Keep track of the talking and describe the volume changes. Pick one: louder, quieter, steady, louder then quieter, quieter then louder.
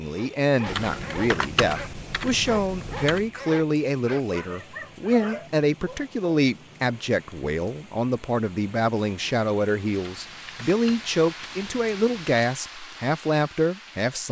steady.